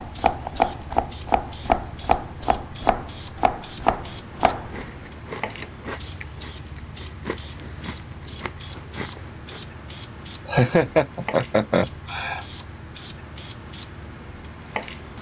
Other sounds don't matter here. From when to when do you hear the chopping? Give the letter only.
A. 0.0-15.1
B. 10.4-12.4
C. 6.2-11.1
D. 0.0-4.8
D.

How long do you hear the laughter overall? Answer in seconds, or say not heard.
2 s.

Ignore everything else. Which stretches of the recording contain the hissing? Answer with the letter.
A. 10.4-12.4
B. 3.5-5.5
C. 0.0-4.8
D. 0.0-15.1
D.